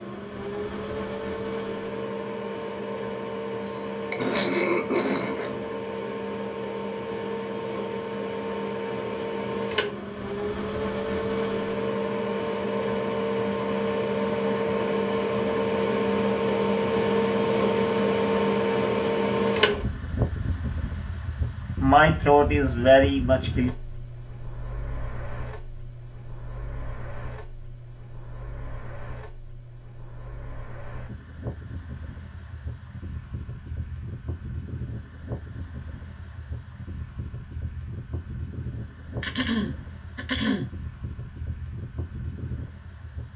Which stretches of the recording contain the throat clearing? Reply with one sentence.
The throat clearing can be heard from 4.1 to 5.6 s, from 21.8 to 23.7 s and from 39.2 to 40.7 s.